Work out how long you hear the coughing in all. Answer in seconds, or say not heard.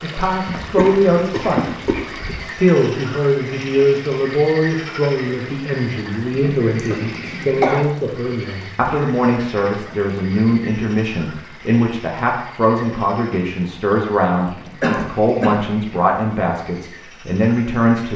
4 s.